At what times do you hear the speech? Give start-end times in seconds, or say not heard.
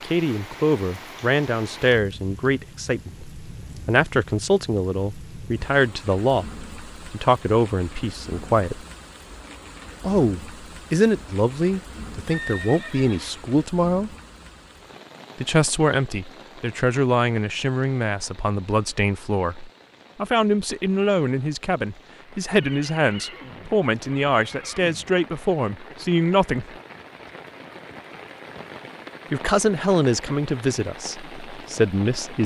0.0-8.8, 10.0-14.1, 15.4-26.6, 29.3-32.4.